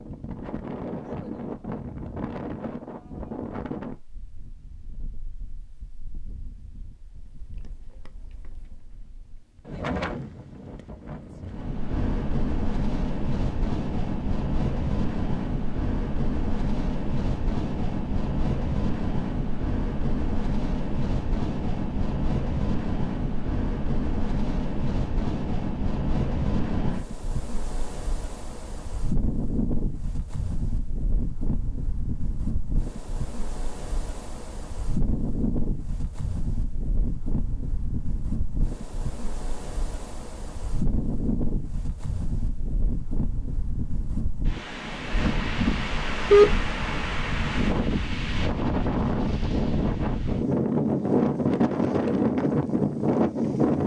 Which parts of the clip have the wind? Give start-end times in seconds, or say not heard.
0.0-53.8.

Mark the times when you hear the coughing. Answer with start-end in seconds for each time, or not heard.
46.3-47.0.